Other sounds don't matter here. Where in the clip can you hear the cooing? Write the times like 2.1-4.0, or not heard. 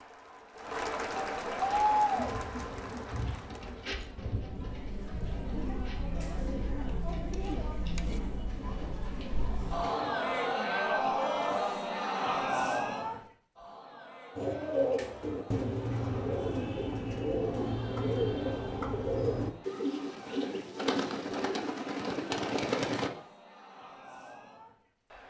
1.6-10.4, 14.3-23.1.